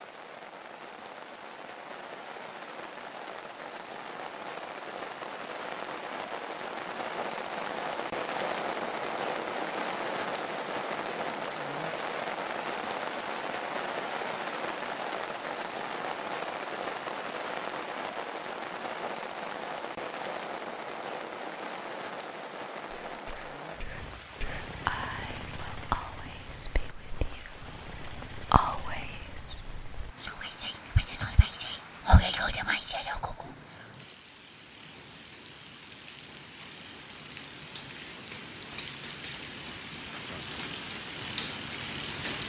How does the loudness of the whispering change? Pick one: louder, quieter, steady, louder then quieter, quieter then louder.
louder.